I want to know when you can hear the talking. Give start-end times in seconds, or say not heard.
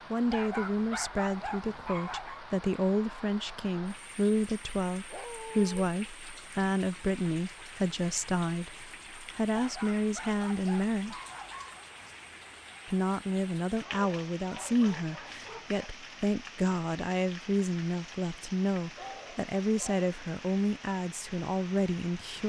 0.1-11.2, 12.8-22.4.